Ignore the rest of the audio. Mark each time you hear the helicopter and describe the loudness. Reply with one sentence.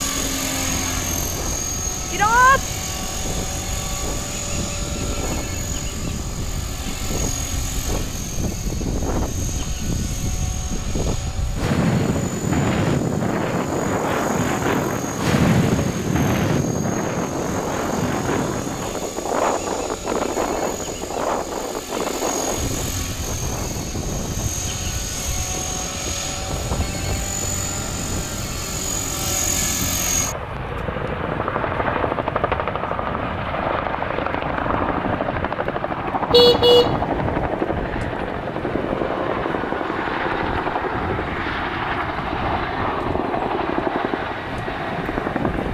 You can hear the helicopter from 0.0 to 45.6 s, getting quieter then louder.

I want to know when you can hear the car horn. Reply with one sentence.
The car horn can be heard from 36.3 to 37.4 s.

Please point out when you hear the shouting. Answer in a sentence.
You can hear the shouting from 2.1 to 2.6 s.